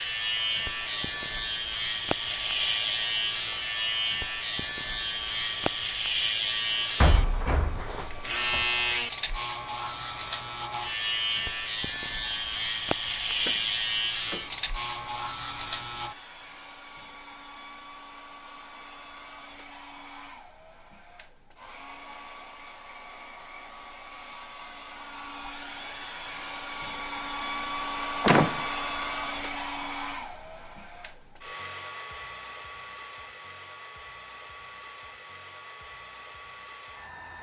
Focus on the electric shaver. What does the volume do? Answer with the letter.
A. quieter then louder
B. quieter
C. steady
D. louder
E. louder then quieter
C.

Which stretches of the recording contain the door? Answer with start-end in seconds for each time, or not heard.
7.0-8.0, 13.3-14.7, 28.2-28.6.